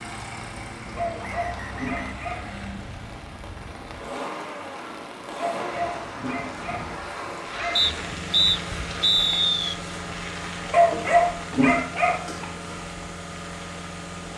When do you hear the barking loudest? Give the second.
11 s.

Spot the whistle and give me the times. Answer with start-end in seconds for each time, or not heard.
1.2-2.2, 7.8-9.8.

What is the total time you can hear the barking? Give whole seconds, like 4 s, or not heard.
6 s.